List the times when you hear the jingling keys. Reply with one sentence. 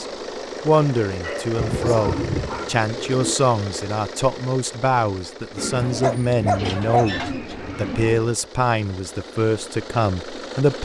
The jingling keys can't be heard in this clip.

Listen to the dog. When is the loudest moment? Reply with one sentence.
The volume of the dog peaks at 7 seconds.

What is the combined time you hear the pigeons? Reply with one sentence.
The pigeons can be heard for 5 seconds in total.